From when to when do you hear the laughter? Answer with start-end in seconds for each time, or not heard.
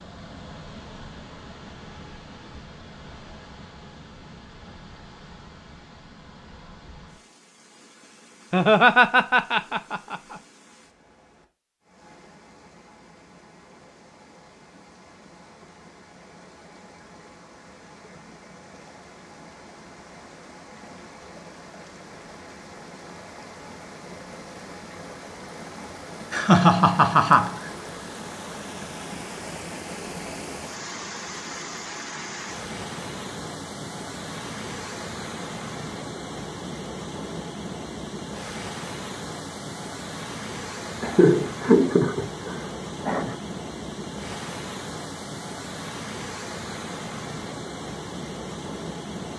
8.5-10.3, 26.3-27.7, 41.0-43.4.